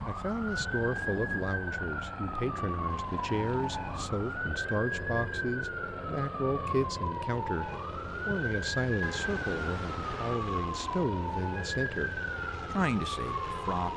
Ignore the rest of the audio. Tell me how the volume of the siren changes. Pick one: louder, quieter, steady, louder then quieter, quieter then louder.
steady.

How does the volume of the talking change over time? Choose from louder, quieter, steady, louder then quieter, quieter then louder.
steady.